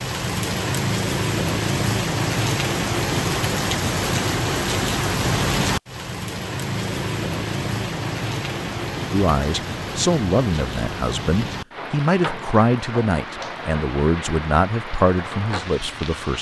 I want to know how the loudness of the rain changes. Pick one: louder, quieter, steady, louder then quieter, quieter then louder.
quieter.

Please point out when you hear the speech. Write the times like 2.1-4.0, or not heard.
9.1-16.3.